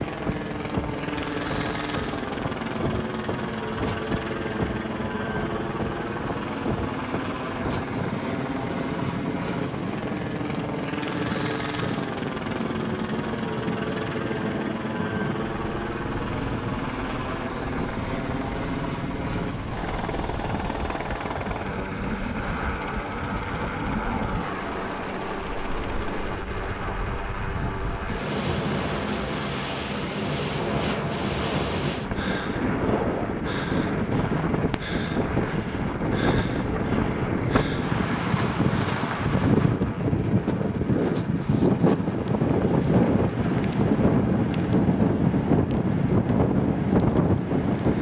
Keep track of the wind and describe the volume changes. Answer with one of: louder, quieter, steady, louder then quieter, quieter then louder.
louder.